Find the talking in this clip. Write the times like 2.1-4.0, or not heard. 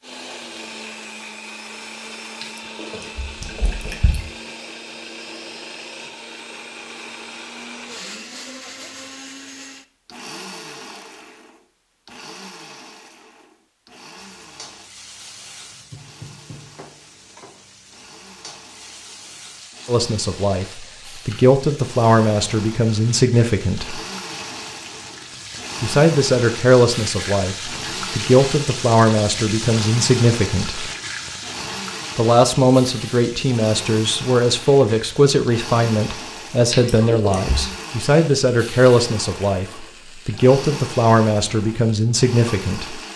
19.9-24.0, 25.8-30.9, 32.1-43.0.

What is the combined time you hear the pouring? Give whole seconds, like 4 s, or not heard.
3 s.